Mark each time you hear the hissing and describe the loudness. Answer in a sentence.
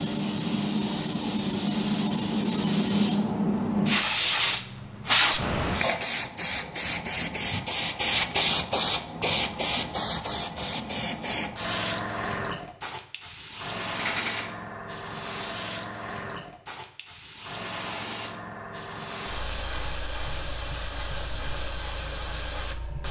You can hear the hissing from 0.0 to 23.0 s, getting quieter.